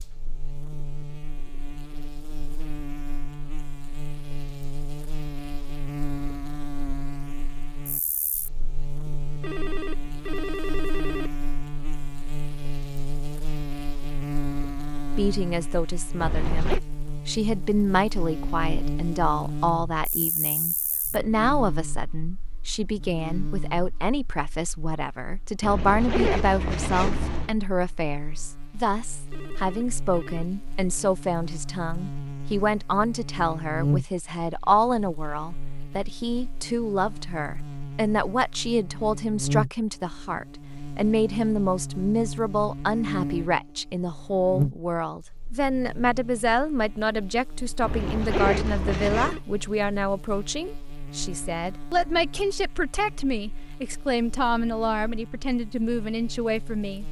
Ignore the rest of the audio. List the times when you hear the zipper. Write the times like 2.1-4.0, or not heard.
16.2-16.8, 25.6-27.6, 47.8-49.4.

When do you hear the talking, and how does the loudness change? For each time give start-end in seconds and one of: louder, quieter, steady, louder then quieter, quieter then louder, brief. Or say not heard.
15.2-57.0 steady.